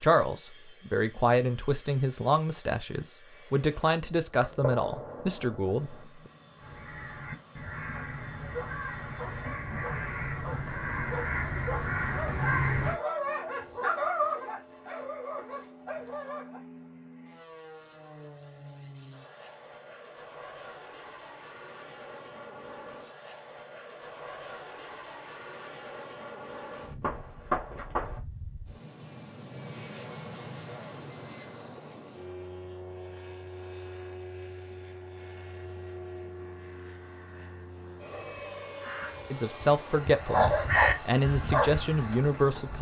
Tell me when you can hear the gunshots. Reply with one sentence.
The gunshots can be heard from 4.4 to 6.0 s and from 27.0 to 28.2 s.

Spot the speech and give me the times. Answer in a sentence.
You can hear the speech from 0.0 to 6.1 s and from 39.3 to 42.7 s.